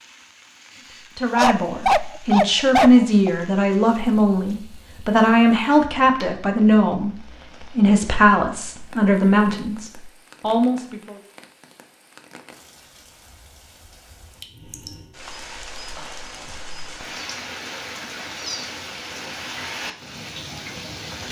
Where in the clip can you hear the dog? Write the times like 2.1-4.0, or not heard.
1.4-3.3.